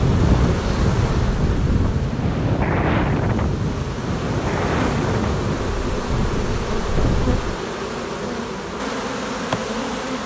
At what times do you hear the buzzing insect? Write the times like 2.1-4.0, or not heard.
0.0-10.2.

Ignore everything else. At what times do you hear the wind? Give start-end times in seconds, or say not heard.
0.0-7.6.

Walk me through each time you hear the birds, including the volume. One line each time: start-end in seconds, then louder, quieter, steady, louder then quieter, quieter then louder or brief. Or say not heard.
not heard.